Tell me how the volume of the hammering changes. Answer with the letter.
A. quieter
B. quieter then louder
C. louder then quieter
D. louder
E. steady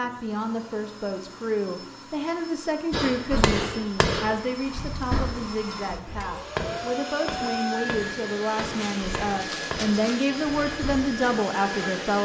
A.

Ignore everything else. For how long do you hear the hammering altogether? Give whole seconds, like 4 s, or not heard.
8 s.